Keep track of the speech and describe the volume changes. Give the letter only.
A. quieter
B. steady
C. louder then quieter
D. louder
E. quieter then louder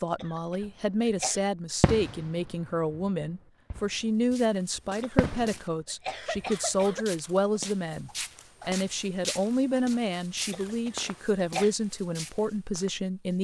B.